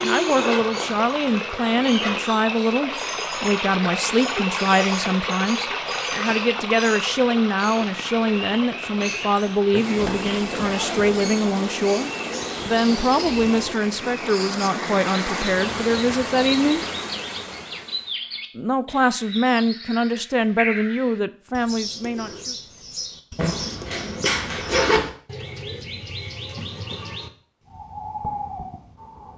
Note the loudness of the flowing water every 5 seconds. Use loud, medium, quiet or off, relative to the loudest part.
loud, loud, loud, loud, off, off.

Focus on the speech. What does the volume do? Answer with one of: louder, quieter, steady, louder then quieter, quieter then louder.
steady.